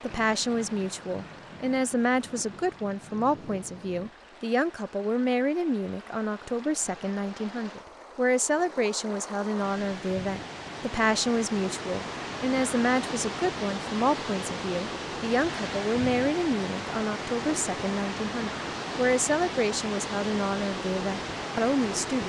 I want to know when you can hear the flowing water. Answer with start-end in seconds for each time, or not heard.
0.0-22.2.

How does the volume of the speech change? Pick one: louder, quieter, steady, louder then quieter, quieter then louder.
steady.